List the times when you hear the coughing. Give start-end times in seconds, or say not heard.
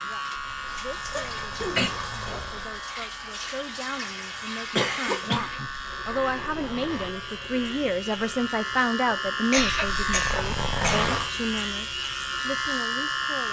1.1-1.9, 4.8-5.7, 9.4-11.2.